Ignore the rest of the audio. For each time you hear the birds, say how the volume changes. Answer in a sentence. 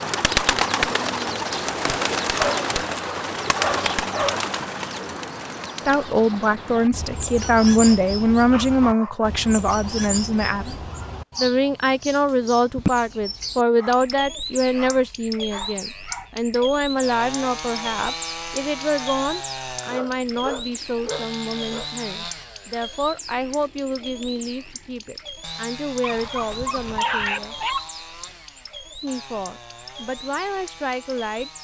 You can hear the birds from 0.0 to 31.5 s, getting quieter.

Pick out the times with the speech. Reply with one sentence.
You can hear the speech from 5.8 to 10.8 s, from 11.4 to 27.6 s and from 29.0 to 31.5 s.